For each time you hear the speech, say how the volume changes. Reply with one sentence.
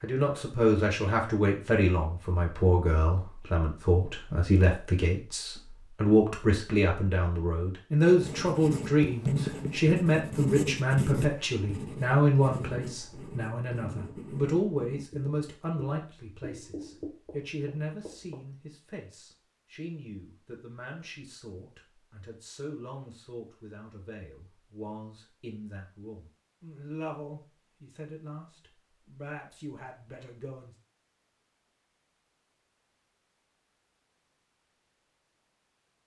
The speech can be heard from 0.0 to 30.8 s, getting quieter.